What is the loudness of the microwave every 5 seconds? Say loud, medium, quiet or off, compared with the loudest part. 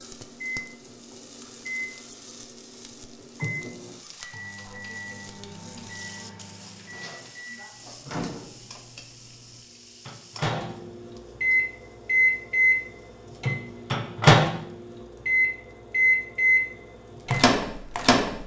quiet, quiet, loud, loud.